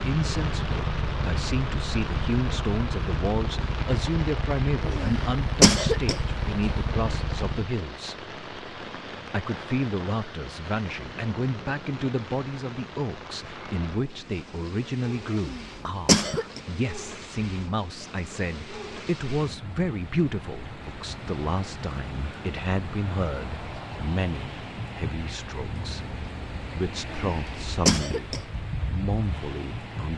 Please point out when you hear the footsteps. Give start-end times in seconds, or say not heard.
not heard.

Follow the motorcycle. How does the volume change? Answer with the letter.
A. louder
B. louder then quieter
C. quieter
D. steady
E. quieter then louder
D.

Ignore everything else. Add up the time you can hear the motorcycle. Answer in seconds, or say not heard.
8 s.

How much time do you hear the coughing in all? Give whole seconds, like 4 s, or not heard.
4 s.